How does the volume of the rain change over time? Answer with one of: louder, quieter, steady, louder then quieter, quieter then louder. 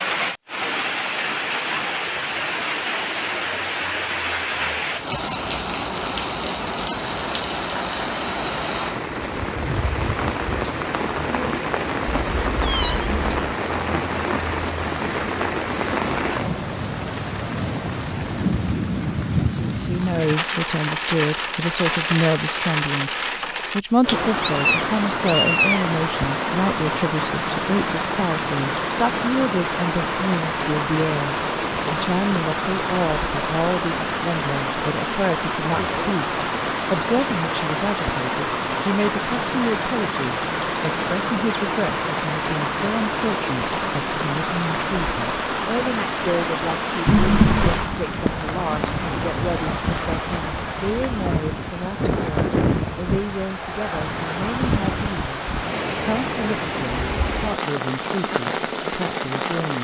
steady.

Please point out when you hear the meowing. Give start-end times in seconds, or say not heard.
12.2-13.6, 24.4-25.9, 47.0-47.9.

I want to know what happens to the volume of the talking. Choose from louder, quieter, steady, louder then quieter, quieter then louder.
quieter.